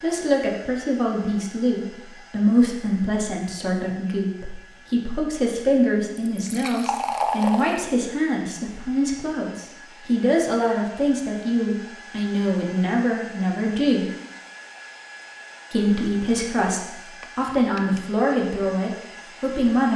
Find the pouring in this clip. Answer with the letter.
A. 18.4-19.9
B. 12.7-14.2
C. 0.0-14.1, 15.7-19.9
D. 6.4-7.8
D.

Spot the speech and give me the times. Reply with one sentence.
The speech can be heard from 0.0 to 14.1 s and from 15.7 to 19.9 s.